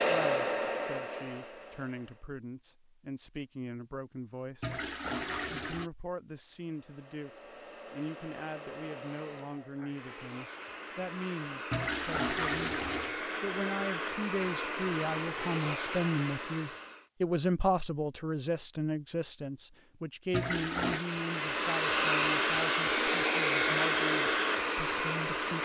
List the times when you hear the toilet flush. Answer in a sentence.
You can hear the toilet flush from 4.6 to 5.9 s, from 11.7 to 13.2 s and from 20.3 to 21.1 s.